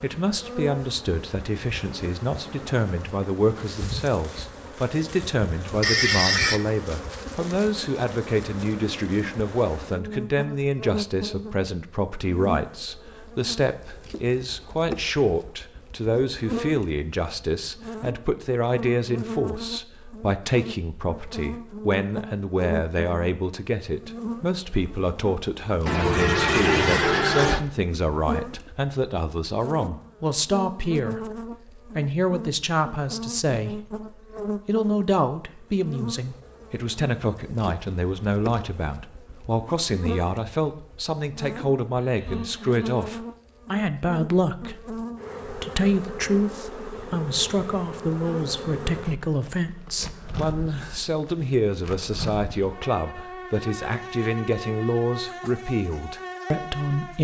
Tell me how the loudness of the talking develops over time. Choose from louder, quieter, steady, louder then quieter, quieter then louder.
steady.